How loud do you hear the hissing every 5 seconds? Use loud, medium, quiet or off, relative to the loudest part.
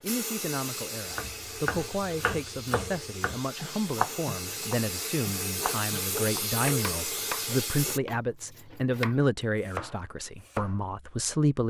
medium, loud, off.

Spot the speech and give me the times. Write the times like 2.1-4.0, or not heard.
0.0-11.6.